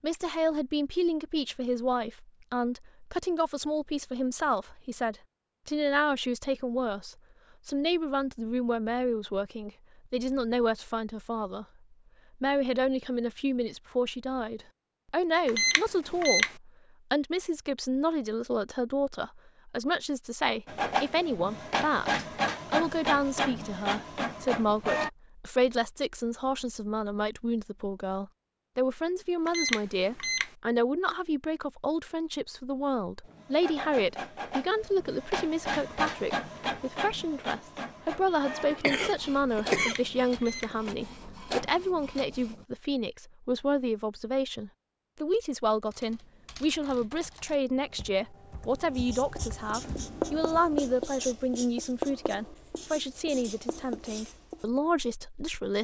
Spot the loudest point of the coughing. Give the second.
40 s.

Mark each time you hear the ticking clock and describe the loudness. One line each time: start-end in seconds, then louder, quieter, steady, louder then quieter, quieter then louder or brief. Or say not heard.
not heard.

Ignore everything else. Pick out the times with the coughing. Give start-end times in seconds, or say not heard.
38.2-40.8.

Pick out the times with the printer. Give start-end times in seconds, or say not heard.
20.6-25.1, 33.2-42.6.